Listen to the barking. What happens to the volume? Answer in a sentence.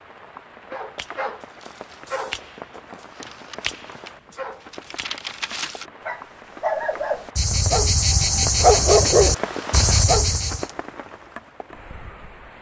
The volume of the barking goes up.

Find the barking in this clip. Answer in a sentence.
The barking can be heard from 0.7 to 10.7 s.